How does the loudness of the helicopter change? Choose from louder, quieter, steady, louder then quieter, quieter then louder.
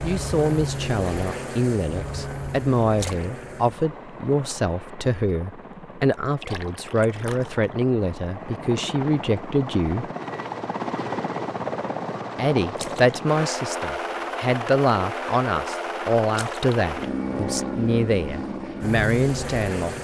quieter then louder.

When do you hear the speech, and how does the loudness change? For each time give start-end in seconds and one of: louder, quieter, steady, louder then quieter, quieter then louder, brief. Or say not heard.
0.0-10.1 steady
12.3-19.9 steady.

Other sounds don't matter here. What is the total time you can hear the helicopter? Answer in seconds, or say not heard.
20 s.